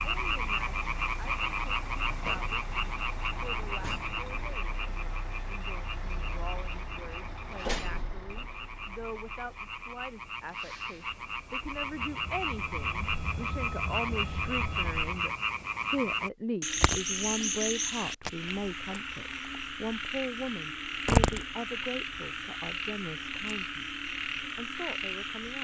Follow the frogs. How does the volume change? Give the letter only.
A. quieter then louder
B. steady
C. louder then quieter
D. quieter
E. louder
A.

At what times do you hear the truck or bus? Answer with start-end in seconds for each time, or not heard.
0.0-15.3.